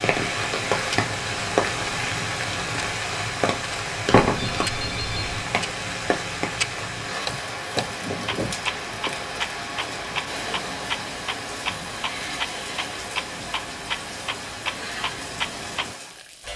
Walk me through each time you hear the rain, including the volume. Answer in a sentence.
The rain can be heard from 0.0 to 16.5 s, getting quieter.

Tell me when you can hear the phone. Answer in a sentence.
The phone can be heard from 4.1 to 5.5 s.